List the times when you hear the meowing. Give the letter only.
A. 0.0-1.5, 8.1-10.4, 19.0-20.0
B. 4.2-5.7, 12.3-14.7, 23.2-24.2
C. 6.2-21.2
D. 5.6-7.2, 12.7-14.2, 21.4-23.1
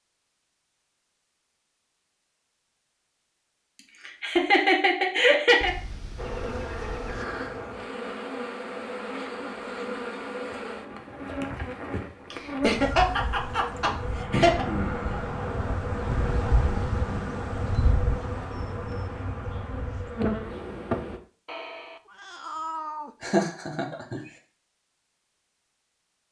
D.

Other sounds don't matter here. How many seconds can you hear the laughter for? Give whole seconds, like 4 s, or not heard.
5 s.